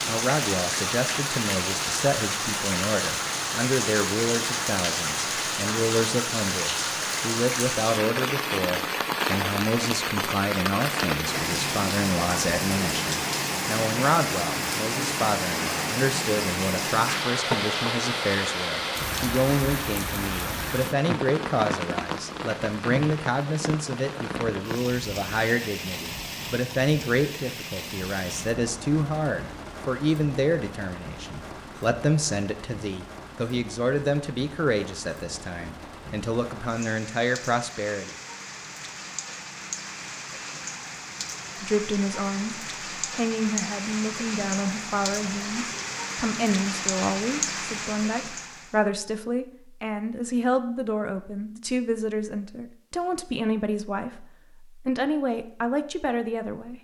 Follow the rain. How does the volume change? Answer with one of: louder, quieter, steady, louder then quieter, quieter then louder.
quieter then louder.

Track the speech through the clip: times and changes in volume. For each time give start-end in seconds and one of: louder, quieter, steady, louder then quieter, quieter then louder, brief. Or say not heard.
0.1-38.1 steady
41.6-56.7 steady.